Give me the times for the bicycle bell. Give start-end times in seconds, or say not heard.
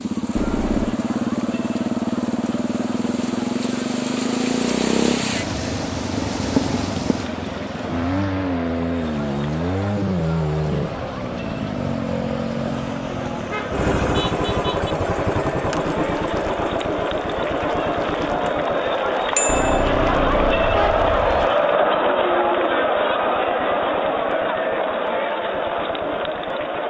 19.4-19.9.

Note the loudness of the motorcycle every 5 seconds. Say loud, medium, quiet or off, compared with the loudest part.
loud, loud, loud, loud, quiet, quiet.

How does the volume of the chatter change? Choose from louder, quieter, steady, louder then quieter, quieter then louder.
louder.